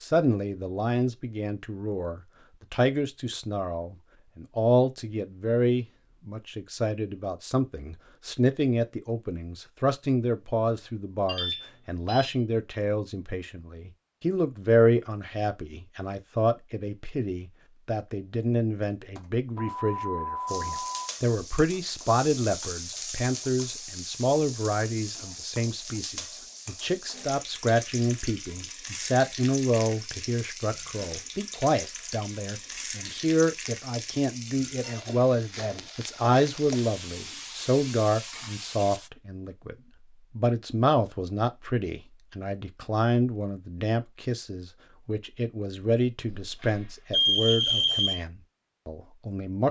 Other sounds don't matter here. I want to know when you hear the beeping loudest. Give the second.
47 s.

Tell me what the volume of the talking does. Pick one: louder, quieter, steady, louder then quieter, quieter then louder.
steady.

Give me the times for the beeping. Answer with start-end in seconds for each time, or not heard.
11.2-12.3, 19.1-21.1, 46.3-48.1.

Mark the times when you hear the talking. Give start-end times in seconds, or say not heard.
0.0-39.8, 40.4-49.6.